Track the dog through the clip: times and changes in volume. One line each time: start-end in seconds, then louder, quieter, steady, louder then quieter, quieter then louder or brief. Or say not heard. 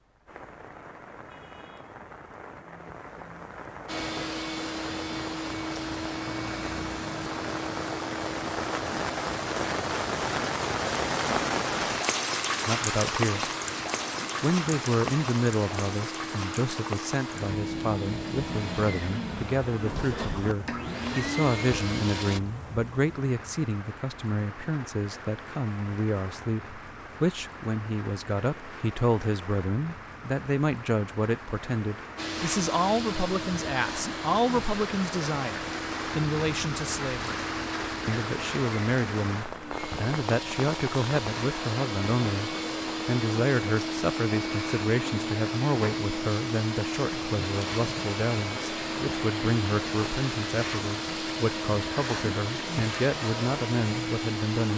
not heard.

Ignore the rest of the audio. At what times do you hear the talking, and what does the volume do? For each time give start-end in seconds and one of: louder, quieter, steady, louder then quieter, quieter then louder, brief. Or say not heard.
12.7-13.5 brief
14.4-37.4 steady
38.0-54.7 steady.